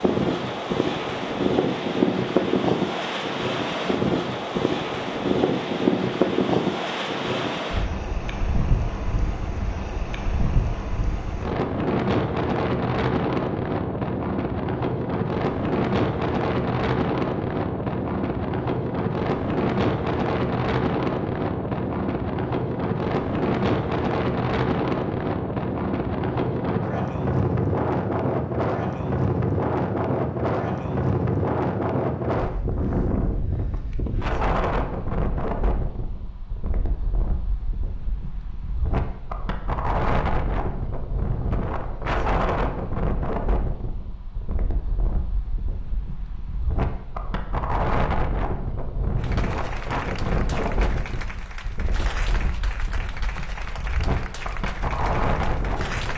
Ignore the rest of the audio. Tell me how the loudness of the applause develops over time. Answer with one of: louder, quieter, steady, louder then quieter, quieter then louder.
steady.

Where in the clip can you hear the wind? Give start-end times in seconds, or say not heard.
0.0-56.1.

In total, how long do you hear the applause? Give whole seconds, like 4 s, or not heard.
7 s.